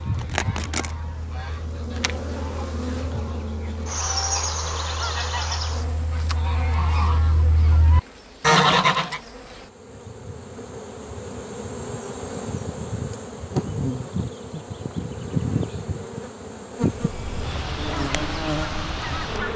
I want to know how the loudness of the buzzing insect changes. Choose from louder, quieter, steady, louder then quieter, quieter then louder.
quieter then louder.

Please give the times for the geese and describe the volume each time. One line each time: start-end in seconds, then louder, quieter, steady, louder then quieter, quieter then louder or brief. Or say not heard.
0.0-9.2 louder
16.8-19.5 brief.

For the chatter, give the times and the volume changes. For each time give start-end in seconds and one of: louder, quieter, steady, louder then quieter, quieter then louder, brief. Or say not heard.
not heard.